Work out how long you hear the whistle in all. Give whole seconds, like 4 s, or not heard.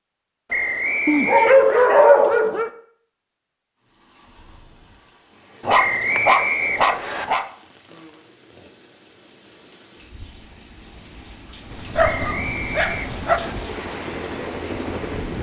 4 s.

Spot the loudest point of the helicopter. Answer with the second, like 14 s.
15 s.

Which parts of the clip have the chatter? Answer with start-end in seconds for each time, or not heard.
not heard.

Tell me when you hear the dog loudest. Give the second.
2 s.